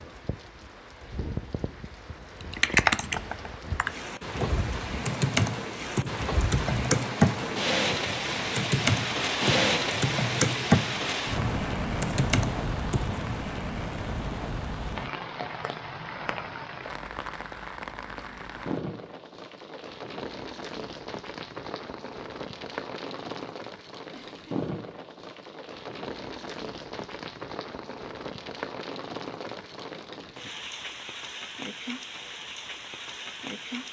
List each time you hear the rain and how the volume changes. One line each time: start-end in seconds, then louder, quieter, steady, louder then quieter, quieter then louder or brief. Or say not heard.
0.0-33.8 louder then quieter.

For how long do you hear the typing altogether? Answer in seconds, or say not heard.
11 s.